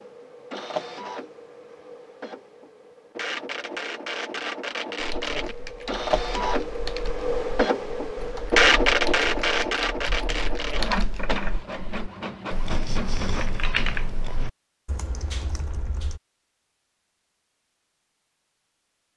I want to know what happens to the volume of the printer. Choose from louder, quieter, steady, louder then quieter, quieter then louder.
louder then quieter.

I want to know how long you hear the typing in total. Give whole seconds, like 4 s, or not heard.
11 s.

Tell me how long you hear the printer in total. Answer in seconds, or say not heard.
14 s.